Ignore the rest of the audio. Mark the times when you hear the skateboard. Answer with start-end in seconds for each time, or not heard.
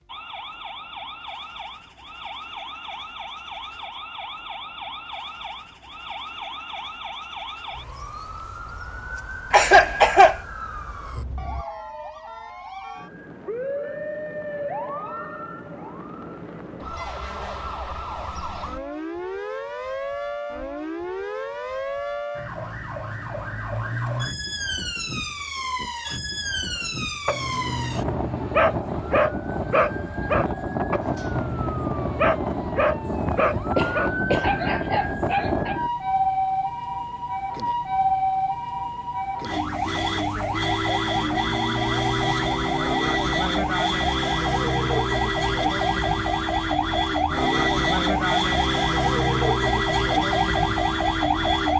not heard.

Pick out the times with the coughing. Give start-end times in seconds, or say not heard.
9.5-10.3, 33.8-35.0.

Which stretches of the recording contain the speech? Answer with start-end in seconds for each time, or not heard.
not heard.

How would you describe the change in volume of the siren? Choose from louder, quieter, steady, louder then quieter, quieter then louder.
louder.